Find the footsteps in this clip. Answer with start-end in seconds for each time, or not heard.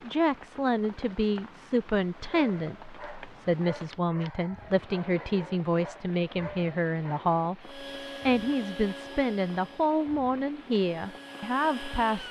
not heard.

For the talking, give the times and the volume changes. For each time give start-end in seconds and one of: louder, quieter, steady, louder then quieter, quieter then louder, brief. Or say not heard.
0.0-12.2 steady.